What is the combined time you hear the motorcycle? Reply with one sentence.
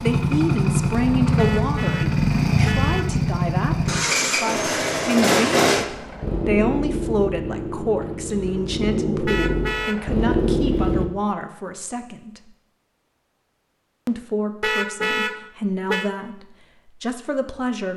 You can hear the motorcycle for 11 seconds altogether.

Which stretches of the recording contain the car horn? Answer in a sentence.
You can hear the car horn from 1.4 to 3.2 s, from 9.2 to 10.1 s and from 14.6 to 16.1 s.